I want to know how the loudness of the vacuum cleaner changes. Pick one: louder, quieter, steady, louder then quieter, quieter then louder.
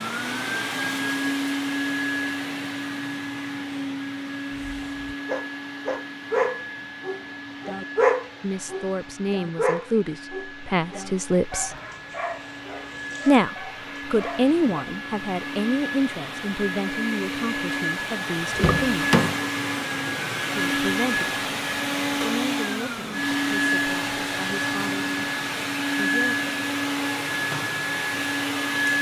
quieter then louder.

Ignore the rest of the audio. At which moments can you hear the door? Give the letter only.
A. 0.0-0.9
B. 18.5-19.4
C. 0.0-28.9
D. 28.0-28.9
B.